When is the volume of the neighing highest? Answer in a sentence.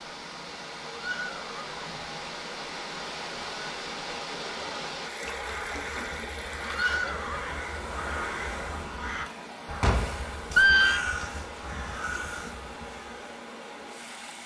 The loudest moment of the neighing is at 11 seconds.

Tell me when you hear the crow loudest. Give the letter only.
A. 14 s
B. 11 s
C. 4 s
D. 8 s
B.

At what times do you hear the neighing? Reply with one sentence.
The neighing can be heard from 0.9 to 2.1 s, from 6.7 to 7.6 s and from 9.8 to 11.0 s.